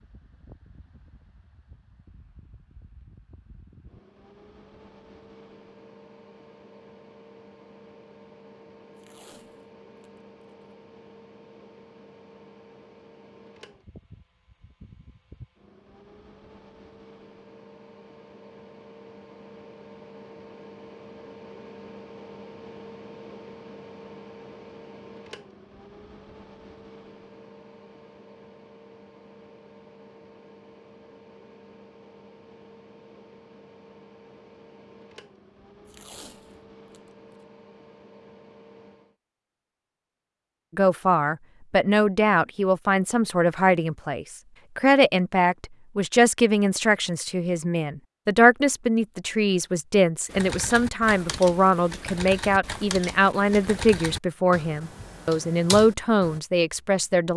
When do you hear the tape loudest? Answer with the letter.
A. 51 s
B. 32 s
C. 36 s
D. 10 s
C.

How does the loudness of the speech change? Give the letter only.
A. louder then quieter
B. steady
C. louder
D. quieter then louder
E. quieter
B.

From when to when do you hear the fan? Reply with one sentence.
The fan can be heard from 0.0 to 39.1 s.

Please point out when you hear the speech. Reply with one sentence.
The speech can be heard from 40.8 to 57.3 s.